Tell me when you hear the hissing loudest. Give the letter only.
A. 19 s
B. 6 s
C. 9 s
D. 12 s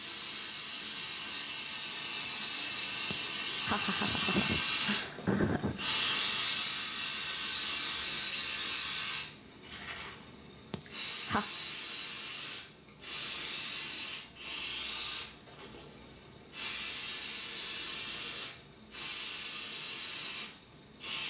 B.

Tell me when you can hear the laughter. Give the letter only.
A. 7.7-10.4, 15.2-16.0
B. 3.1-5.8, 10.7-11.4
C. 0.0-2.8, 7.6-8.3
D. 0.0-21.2
B.